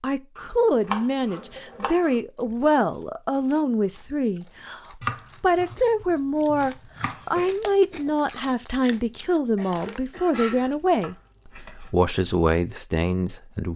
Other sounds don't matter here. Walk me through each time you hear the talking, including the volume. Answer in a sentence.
The talking can be heard from 0.0 to 13.7 s, at a steady volume.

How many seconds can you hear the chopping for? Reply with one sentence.
You can hear the chopping for 6 seconds altogether.